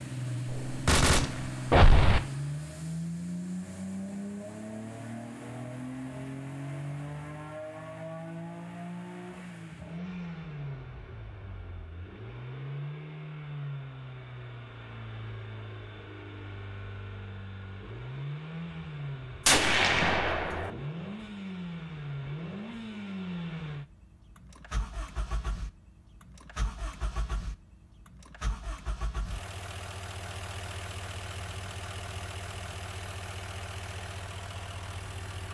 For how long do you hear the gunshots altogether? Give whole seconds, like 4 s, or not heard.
3 s.